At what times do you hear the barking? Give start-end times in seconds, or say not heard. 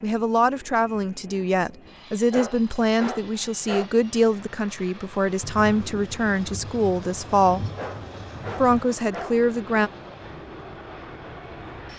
2.3-3.9, 7.8-9.3.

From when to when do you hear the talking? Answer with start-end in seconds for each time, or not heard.
0.0-7.7, 8.6-9.9.